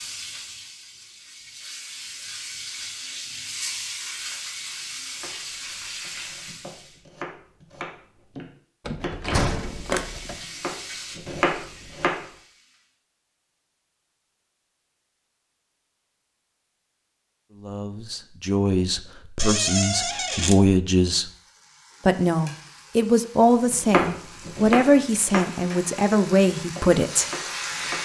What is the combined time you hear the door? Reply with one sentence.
You can hear the door for 3 seconds altogether.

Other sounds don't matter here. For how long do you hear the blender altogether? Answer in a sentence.
You can't hear the blender here.